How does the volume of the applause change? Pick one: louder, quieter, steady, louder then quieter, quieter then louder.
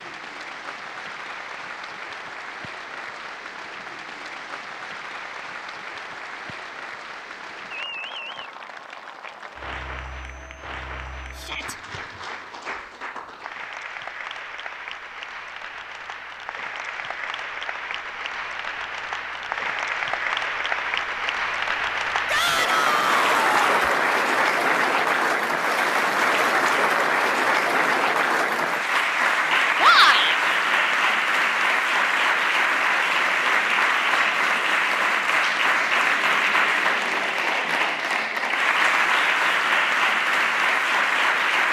louder.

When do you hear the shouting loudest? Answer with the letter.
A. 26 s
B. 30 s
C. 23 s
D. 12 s
B.